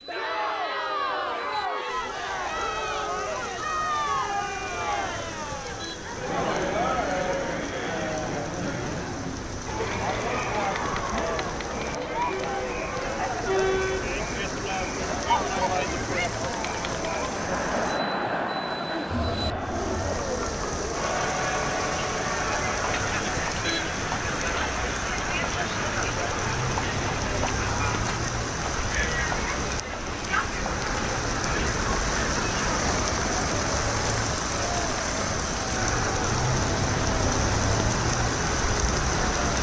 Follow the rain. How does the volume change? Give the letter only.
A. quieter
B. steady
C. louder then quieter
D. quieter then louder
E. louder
E.